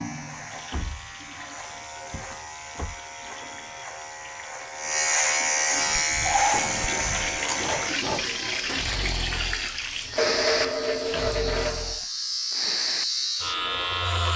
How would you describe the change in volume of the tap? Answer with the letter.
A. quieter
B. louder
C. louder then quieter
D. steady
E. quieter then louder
B.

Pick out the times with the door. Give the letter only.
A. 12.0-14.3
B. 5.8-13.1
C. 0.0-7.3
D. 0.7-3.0
D.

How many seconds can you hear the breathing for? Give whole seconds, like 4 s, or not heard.
7 s.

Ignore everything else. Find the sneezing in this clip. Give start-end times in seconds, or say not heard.
not heard.